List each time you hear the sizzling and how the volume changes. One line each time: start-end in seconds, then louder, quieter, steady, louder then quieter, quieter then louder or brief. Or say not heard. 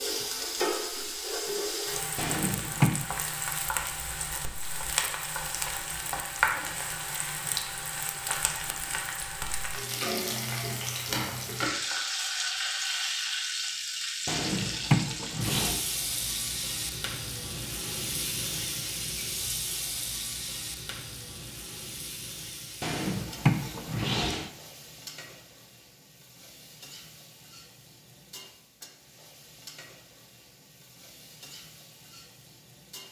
0.0-33.0 quieter.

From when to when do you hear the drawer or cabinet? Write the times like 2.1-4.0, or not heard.
2.1-3.0, 14.2-15.8, 22.8-24.5.